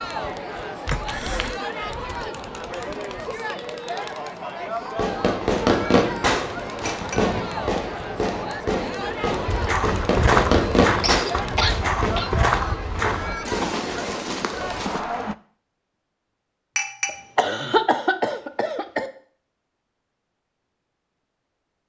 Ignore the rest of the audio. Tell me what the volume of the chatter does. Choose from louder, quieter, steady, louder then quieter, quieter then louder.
steady.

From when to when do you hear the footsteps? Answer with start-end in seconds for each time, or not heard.
9.4-15.0.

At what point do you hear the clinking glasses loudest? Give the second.
17 s.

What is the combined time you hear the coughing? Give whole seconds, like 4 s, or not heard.
4 s.